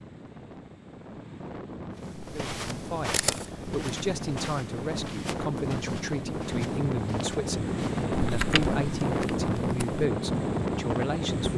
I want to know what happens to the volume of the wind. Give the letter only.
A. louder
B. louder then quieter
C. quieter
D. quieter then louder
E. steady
A.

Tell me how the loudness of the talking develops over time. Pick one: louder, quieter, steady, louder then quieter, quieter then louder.
steady.